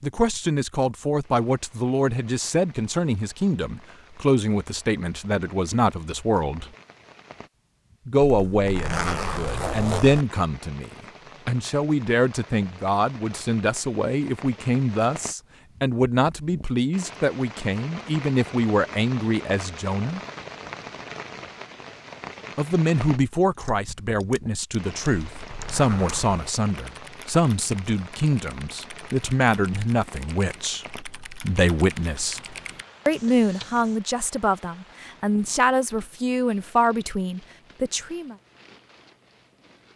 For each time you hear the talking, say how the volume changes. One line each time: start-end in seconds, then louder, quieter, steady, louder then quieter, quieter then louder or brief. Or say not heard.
0.0-6.7 steady
8.1-20.2 steady
22.6-38.4 steady.